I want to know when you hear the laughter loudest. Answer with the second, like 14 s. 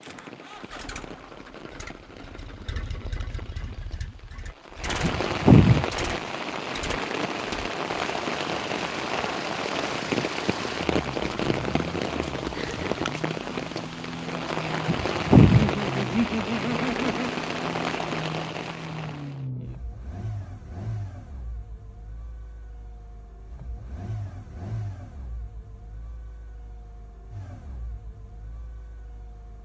16 s.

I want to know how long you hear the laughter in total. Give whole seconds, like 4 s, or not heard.
2 s.